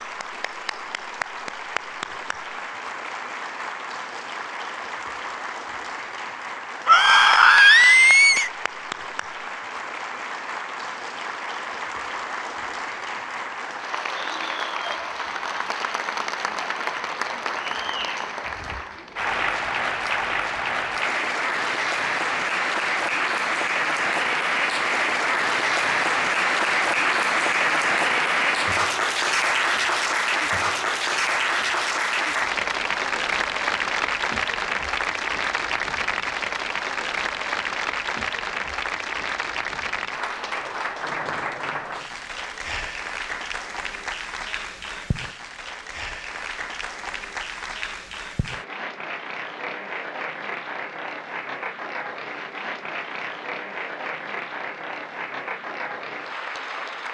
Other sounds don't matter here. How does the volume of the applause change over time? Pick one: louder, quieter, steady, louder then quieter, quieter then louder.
louder then quieter.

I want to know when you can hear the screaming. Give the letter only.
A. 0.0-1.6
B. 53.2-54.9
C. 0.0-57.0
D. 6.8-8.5
D.